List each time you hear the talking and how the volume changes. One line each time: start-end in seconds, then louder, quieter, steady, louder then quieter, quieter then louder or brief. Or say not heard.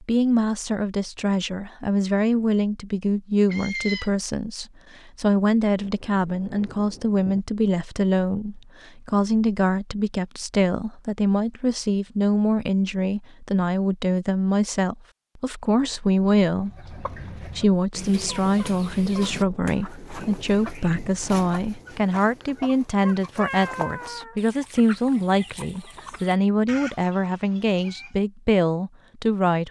0.0-29.6 steady.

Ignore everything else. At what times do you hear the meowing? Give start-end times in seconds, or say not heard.
3.5-4.1, 23.0-24.4.